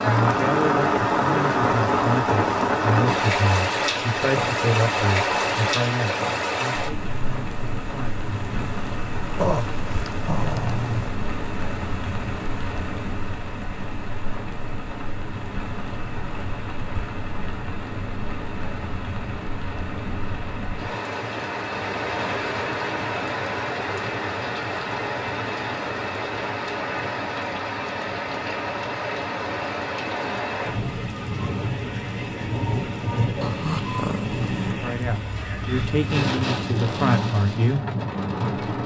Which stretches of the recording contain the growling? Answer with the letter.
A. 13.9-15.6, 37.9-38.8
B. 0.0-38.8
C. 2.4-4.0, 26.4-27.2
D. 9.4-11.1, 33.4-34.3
D.